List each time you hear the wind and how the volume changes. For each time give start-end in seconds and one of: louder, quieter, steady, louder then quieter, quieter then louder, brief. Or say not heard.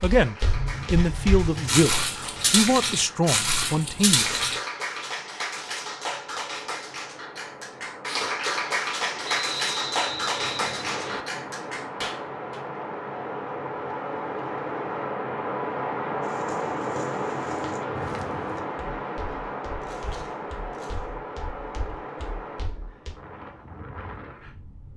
0.1-24.9 louder then quieter.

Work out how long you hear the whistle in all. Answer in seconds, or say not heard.
2 s.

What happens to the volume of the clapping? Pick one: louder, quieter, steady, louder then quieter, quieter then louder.
louder.